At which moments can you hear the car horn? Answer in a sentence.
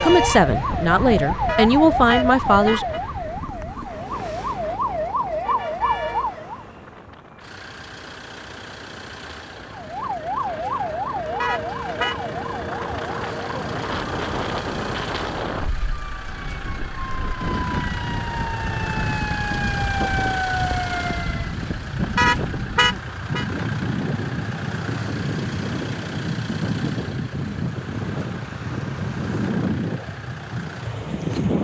You can hear the car horn from 1.4 to 3.0 s, from 11.4 to 12.2 s and from 22.1 to 23.4 s.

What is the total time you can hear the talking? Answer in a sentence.
You can hear the talking for 3 seconds altogether.